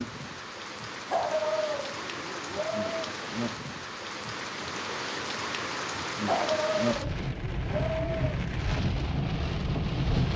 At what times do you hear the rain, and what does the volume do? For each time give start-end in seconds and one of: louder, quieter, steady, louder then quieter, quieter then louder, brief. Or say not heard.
0.0-10.3 louder.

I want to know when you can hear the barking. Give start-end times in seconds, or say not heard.
1.1-3.1, 6.2-8.4.